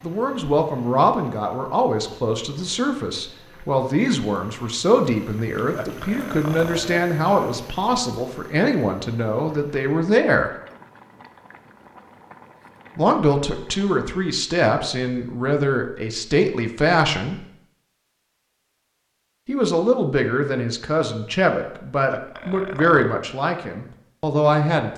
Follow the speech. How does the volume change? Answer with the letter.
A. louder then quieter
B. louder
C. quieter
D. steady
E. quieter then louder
D.